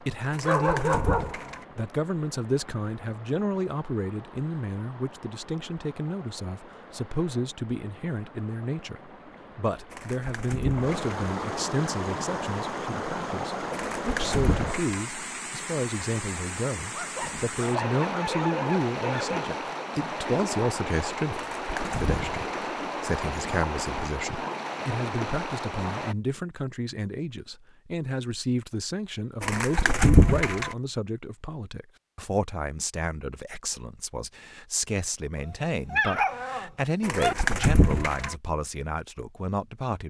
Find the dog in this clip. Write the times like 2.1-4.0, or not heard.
0.4-1.6, 16.9-19.6, 35.4-37.4.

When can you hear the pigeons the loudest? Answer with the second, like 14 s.
30 s.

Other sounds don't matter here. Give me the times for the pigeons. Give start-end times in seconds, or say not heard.
0.3-1.6, 9.9-11.2, 13.7-15.1, 21.3-22.4, 29.4-30.8, 37.0-38.4.